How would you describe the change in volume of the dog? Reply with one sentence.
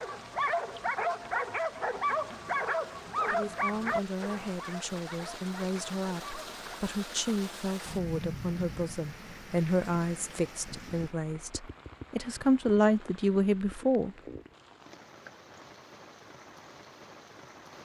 The loudness of the dog goes down.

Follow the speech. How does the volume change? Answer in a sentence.
The volume of the speech goes up.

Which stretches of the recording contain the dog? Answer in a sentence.
You can hear the dog from 0.0 to 6.5 s.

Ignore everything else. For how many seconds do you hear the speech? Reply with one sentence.
You can hear the speech for 11 seconds altogether.